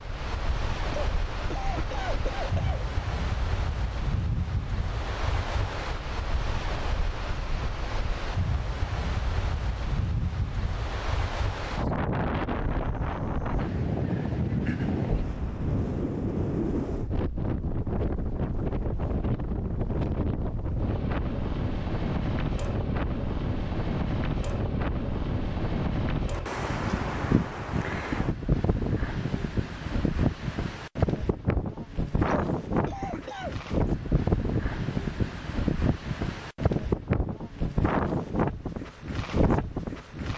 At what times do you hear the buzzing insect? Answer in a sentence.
You can't hear the buzzing insect here.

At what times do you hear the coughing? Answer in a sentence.
The coughing can be heard from 0.9 to 2.9 s, from 14.7 to 15.1 s and from 32.2 to 33.5 s.